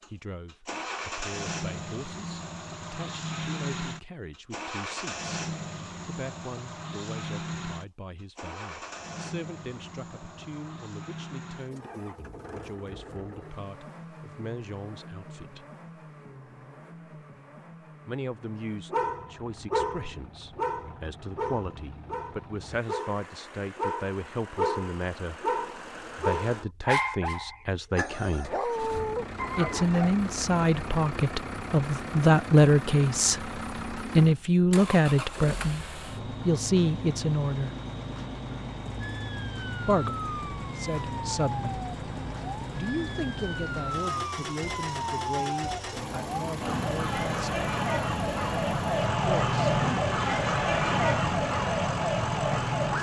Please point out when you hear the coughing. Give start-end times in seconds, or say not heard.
not heard.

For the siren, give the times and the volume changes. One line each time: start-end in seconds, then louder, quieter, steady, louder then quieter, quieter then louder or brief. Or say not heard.
39.0-52.9 louder.